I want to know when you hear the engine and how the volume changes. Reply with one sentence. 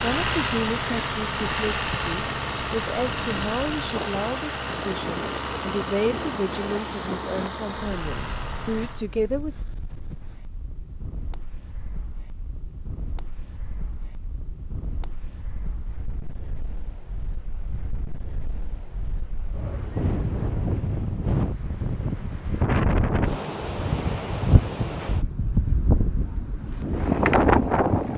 You can hear the engine from 0.0 to 9.1 s, getting quieter.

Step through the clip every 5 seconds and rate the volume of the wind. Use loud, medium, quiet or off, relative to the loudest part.
quiet, quiet, quiet, quiet, loud, loud.